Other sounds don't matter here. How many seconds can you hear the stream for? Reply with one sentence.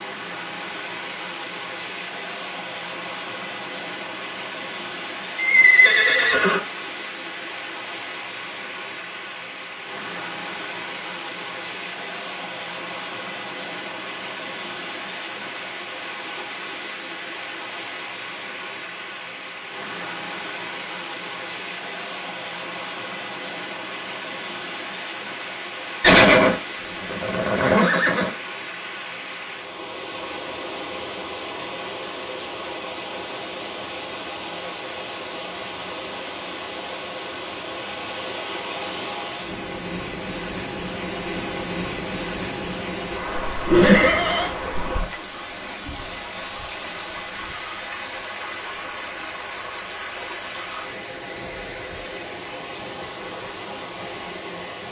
The stream can be heard for 55 seconds in total.